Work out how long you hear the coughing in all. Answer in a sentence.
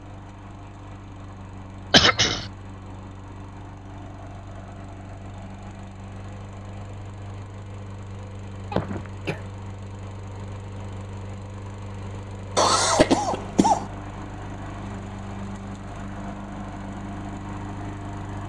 You can hear the coughing for 3 seconds altogether.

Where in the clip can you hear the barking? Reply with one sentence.
You can't hear the barking here.